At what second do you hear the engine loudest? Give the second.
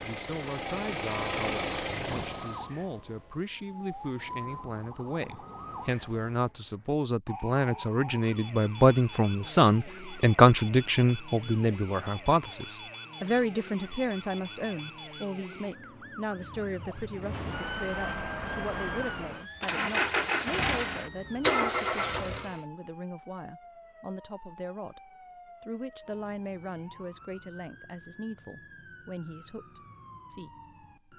22 s.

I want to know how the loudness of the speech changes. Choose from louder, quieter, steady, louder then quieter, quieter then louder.
louder then quieter.